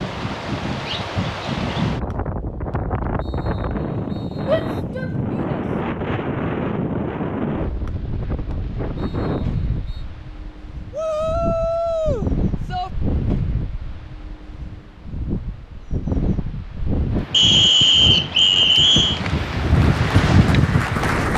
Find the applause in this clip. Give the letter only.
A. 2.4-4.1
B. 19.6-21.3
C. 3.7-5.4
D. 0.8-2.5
B.